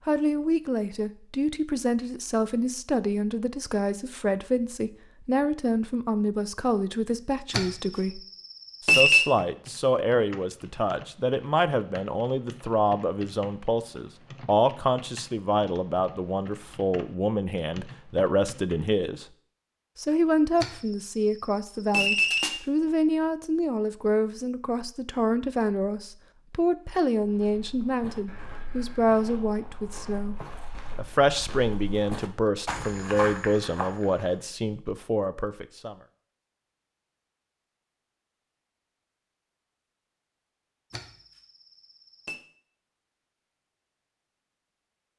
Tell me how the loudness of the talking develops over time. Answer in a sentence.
The volume of the talking stays about the same.